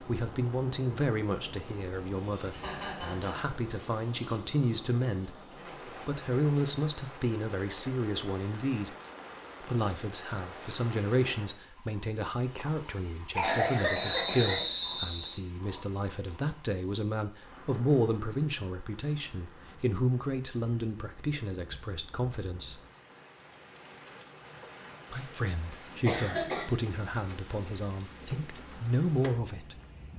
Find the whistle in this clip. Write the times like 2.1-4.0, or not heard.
13.9-15.4.